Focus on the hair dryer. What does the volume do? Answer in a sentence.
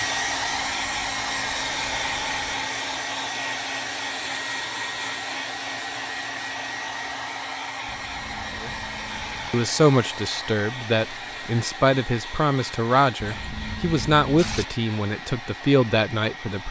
The loudness of the hair dryer goes down.